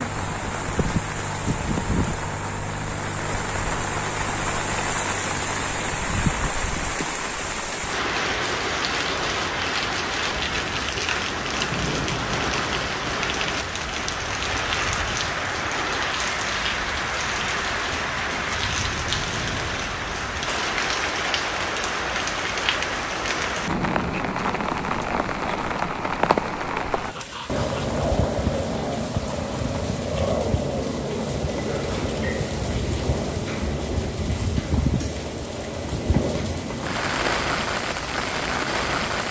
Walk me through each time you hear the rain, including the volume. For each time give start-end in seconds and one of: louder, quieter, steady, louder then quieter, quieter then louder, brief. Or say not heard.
0.0-39.2 steady.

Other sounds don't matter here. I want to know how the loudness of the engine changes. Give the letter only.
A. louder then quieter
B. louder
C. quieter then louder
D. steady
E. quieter
D.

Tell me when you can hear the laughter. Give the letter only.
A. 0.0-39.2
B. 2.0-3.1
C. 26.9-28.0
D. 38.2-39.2
C.